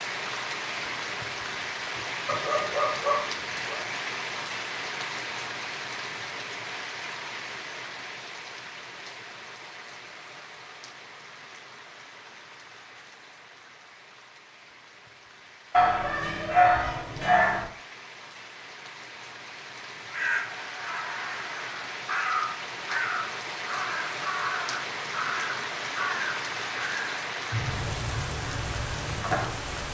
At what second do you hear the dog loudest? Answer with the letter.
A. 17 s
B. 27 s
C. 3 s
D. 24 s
A.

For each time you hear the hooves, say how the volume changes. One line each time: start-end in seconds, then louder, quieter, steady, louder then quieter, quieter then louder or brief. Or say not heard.
not heard.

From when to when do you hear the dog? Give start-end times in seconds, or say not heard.
2.2-3.8, 15.7-17.6.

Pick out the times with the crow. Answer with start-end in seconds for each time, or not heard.
20.1-29.5.